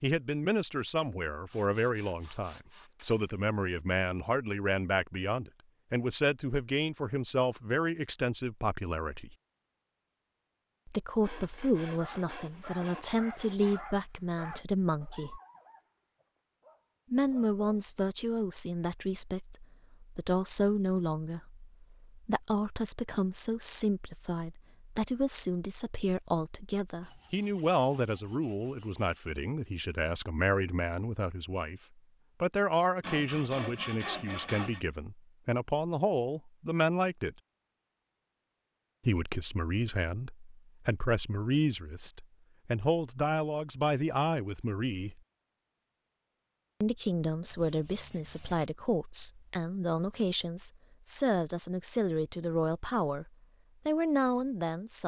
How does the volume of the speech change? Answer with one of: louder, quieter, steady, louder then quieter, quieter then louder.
steady.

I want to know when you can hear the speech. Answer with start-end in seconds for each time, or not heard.
0.0-9.3, 10.8-15.4, 17.1-31.8, 32.4-37.4, 39.0-45.2, 46.8-55.0.